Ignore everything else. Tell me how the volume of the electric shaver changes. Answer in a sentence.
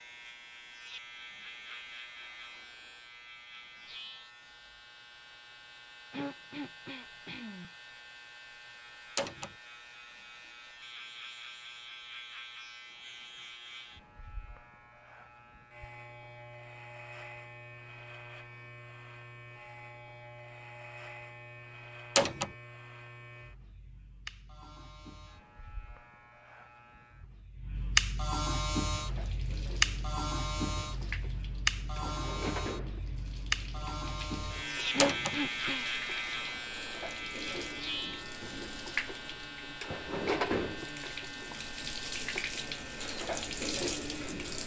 The volume of the electric shaver goes up, then down.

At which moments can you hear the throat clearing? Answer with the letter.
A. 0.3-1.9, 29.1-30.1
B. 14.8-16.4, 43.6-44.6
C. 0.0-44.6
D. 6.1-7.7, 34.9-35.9
D.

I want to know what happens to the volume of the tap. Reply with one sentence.
The volume of the tap goes up.